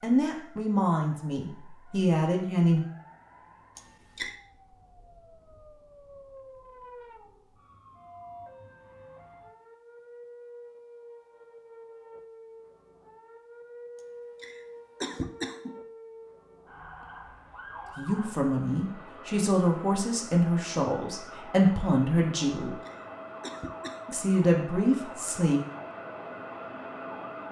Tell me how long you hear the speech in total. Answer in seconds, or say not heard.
9 s.